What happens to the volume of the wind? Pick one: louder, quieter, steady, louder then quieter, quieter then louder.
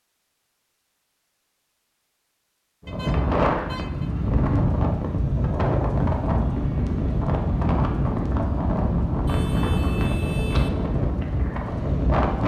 steady.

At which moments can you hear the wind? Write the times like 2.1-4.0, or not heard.
2.8-12.4.